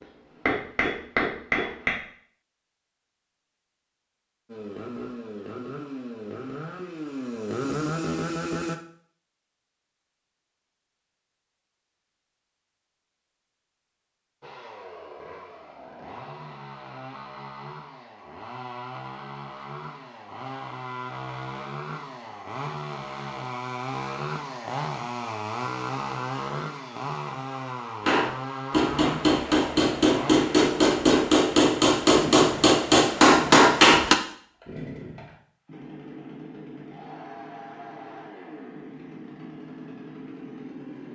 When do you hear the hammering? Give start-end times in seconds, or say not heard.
0.0-1.9, 28.1-34.1.